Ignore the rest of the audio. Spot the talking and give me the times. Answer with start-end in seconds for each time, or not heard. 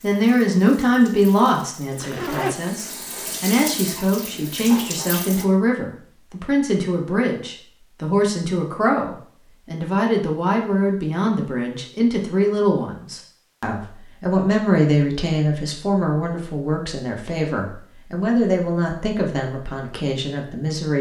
0.0-20.9.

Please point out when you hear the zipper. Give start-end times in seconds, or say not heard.
2.0-3.5.